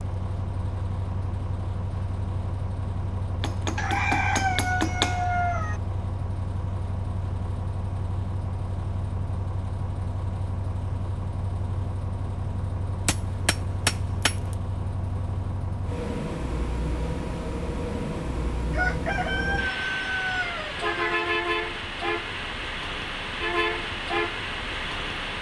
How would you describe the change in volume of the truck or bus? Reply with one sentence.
The volume of the truck or bus goes up.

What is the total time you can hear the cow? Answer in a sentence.
The cow can't be heard in this clip.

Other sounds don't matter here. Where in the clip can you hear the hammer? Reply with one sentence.
You can hear the hammer from 3.4 to 5.2 s and from 13.1 to 14.6 s.